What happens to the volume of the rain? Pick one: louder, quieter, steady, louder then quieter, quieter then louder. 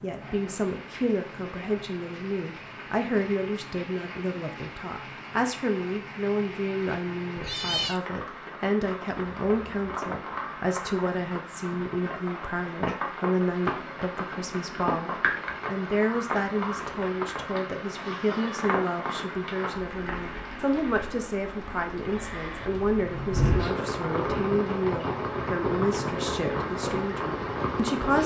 louder.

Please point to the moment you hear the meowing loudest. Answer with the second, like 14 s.
8 s.